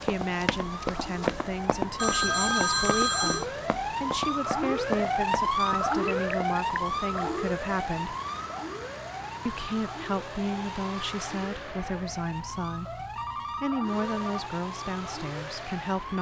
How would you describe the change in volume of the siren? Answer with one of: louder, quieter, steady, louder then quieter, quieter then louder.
louder then quieter.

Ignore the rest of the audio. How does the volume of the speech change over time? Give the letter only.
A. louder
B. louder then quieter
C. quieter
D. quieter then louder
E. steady
E.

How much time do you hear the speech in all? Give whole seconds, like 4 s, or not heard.
15 s.